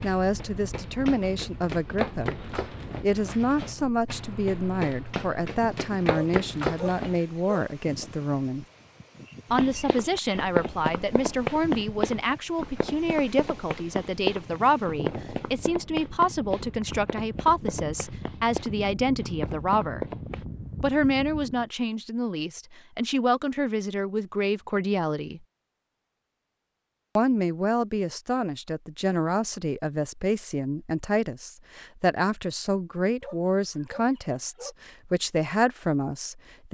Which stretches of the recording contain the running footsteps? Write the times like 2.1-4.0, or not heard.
0.0-7.2, 9.5-20.4.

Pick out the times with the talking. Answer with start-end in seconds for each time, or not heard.
0.0-8.7, 9.5-20.1, 20.8-25.4, 27.1-36.7.